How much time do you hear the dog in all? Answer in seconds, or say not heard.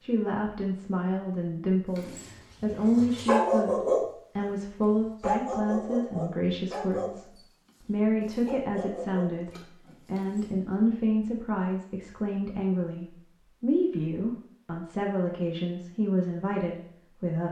8 s.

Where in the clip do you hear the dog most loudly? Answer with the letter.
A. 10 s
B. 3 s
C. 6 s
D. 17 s
B.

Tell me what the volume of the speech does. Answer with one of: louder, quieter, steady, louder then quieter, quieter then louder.
steady.